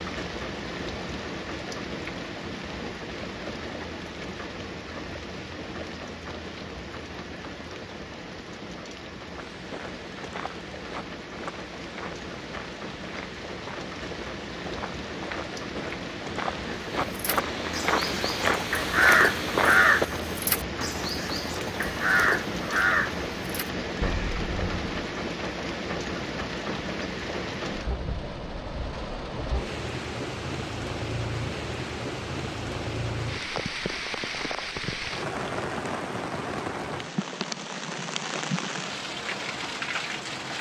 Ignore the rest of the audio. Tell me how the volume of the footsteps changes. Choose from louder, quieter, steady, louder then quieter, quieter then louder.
louder.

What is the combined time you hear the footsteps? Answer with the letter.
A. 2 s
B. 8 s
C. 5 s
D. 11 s
D.